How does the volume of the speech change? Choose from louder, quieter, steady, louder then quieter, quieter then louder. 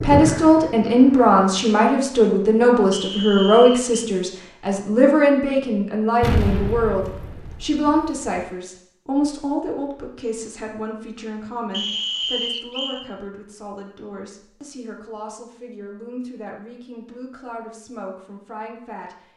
quieter.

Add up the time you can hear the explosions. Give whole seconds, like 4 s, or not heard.
2 s.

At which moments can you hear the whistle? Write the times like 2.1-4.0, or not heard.
2.9-4.0, 11.7-13.1.